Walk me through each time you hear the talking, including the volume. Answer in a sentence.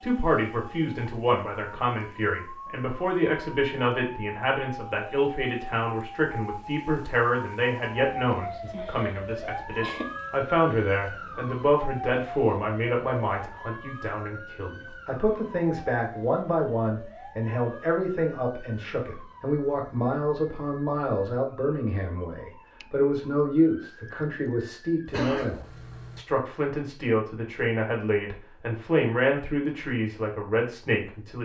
You can hear the talking from 0.0 to 31.3 s, at a steady volume.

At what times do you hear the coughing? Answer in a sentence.
You can hear the coughing from 8.7 to 10.1 s and from 25.1 to 26.2 s.